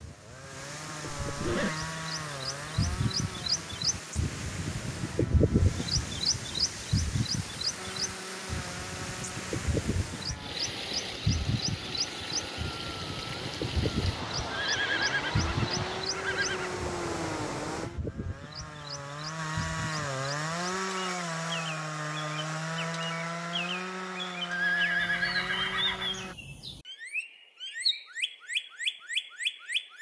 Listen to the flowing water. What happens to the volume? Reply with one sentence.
The volume of the flowing water goes up.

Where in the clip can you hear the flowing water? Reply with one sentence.
You can hear the flowing water from 0.0 to 17.9 s.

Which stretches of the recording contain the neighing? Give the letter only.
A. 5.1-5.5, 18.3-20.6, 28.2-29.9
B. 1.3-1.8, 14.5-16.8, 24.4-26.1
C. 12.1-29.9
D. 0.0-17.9
B.